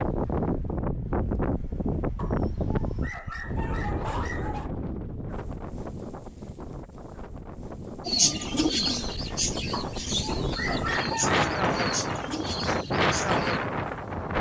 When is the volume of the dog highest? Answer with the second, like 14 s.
11 s.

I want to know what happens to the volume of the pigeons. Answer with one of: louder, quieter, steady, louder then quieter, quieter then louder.
quieter.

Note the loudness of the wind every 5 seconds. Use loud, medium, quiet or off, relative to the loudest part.
loud, medium, loud.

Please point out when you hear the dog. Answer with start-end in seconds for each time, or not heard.
2.1-4.7, 9.7-11.4.